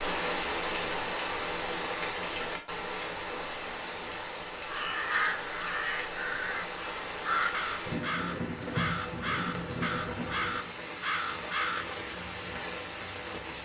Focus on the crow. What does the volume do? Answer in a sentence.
The loudness of the crow stays about the same.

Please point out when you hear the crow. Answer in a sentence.
The crow can be heard from 4.7 to 11.8 s.